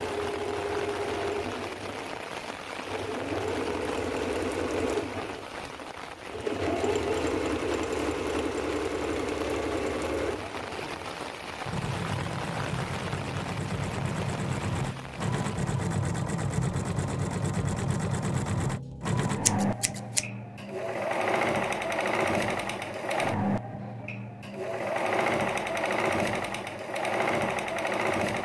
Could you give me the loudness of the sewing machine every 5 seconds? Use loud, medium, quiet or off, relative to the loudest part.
loud, loud, medium, loud, loud, loud.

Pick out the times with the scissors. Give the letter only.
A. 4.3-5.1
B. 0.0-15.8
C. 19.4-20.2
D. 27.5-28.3
C.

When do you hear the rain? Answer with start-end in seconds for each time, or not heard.
0.0-15.8.